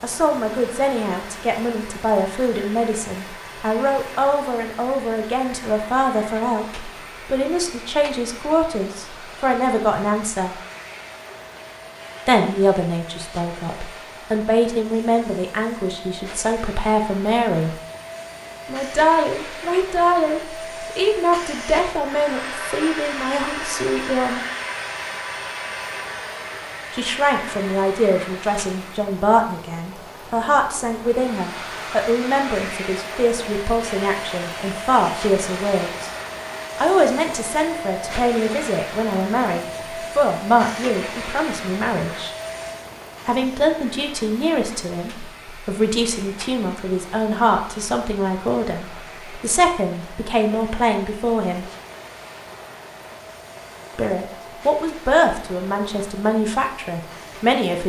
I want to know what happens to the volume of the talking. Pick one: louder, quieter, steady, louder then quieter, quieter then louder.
steady.